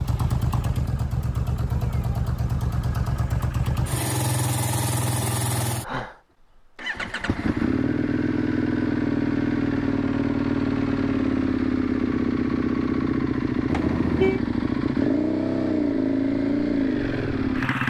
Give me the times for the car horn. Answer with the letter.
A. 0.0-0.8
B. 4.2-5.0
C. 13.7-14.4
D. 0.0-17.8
C.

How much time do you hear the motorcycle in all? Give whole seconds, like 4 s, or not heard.
18 s.